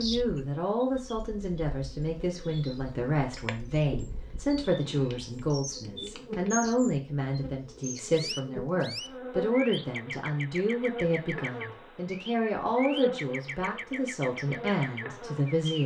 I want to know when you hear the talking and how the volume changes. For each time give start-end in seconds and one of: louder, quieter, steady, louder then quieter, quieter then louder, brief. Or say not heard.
0.0-15.8 steady.